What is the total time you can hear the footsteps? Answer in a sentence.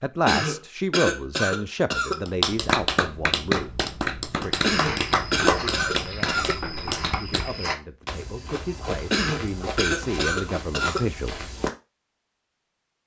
You can hear the footsteps for 7 seconds altogether.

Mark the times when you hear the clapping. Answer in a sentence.
The clapping can be heard from 2.2 to 7.5 s.